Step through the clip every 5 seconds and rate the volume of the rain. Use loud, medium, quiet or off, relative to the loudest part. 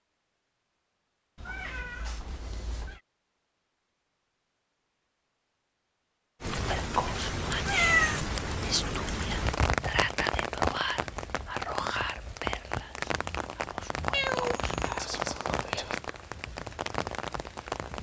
off, loud, loud, loud.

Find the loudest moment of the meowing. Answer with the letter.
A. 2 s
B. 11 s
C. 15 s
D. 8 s
D.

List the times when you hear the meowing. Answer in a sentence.
The meowing can be heard from 1.4 to 3.0 s, from 7.7 to 8.2 s and from 14.1 to 15.1 s.